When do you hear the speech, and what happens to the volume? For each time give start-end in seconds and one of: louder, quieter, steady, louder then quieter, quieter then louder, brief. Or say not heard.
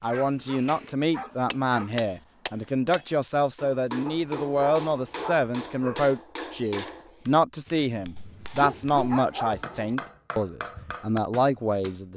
0.0-12.1 steady.